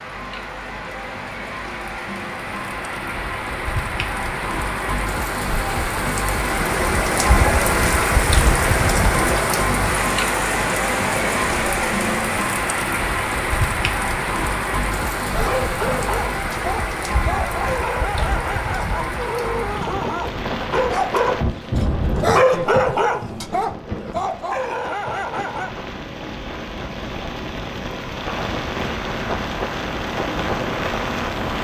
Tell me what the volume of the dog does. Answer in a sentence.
The volume of the dog goes up, then down.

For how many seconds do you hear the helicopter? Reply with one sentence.
The helicopter can be heard for 6 seconds in total.